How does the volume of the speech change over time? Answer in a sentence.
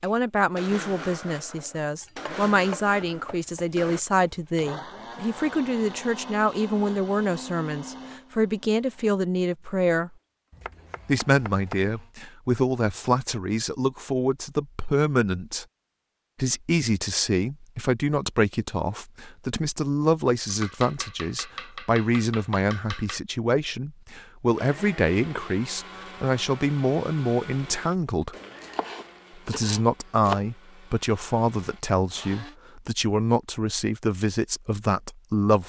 The loudness of the speech stays about the same.